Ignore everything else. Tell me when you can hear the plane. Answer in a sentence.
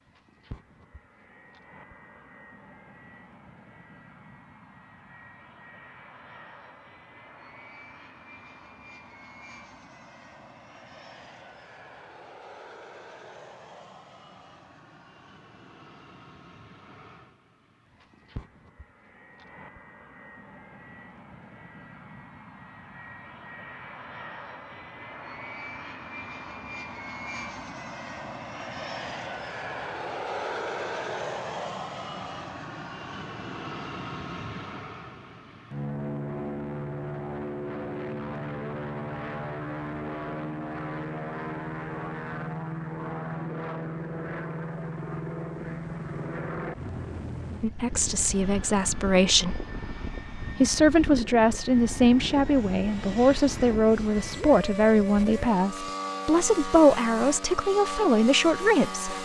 The plane can be heard from 0.0 to 59.2 s.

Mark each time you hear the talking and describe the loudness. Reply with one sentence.
You can hear the talking briefly from 47.6 to 49.6 s; and from 50.5 to 59.1 s, at a steady volume.